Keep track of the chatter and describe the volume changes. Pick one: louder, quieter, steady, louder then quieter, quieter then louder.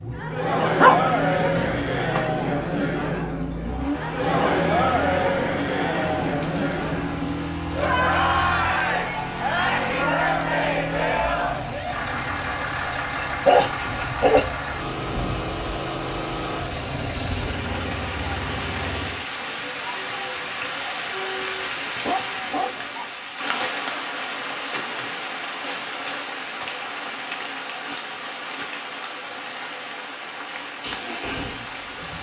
quieter.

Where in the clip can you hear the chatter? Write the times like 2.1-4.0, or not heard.
0.0-23.4.